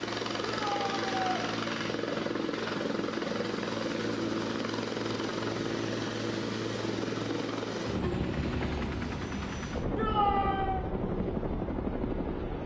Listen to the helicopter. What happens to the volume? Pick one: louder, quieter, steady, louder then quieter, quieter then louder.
steady.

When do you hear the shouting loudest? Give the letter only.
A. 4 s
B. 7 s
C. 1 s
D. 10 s
D.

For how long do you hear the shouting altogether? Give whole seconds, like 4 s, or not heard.
2 s.